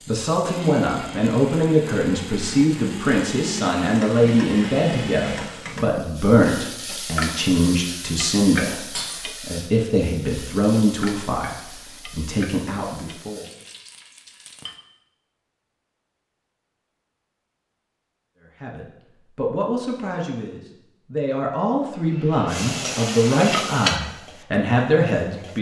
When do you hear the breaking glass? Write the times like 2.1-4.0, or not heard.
8.9-9.4.